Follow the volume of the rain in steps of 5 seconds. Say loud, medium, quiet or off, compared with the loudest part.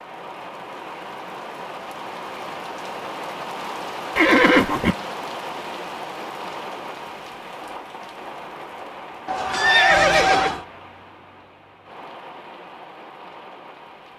loud, loud, medium.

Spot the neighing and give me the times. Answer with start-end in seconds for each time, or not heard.
4.2-5.0, 9.2-10.7.